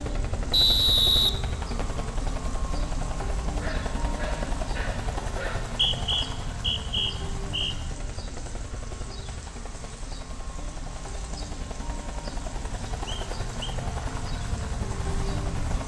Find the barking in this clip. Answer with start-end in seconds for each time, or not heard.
3.5-5.8.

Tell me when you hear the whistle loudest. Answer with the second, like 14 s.
1 s.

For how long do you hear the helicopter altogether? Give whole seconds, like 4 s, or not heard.
16 s.